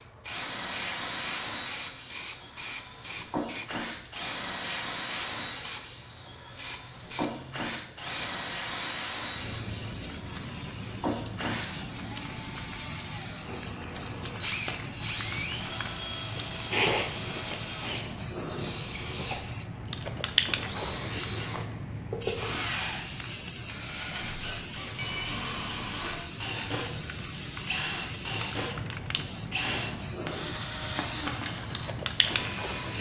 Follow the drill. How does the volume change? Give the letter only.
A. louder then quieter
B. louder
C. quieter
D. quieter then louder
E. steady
E.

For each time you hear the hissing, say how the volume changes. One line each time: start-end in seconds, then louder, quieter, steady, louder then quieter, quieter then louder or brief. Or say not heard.
0.0-32.9 steady.